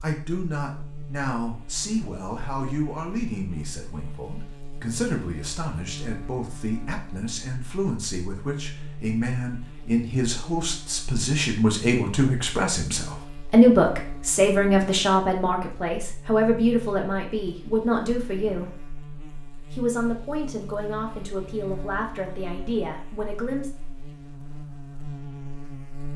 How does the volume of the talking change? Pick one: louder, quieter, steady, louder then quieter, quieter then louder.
louder then quieter.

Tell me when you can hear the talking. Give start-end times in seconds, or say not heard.
0.0-18.8, 19.7-23.7.